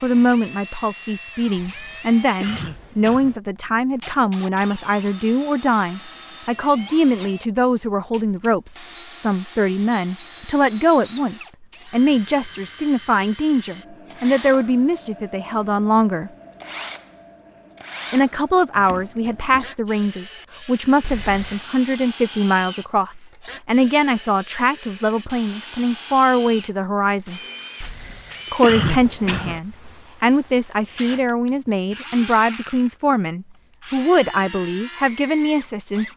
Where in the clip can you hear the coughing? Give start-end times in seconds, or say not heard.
1.6-3.4, 21.0-21.6, 27.8-29.6.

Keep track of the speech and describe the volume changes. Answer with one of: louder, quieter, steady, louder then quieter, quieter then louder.
steady.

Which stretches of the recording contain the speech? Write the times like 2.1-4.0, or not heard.
0.0-16.3, 18.1-27.4, 28.5-36.1.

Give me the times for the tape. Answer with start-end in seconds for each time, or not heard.
not heard.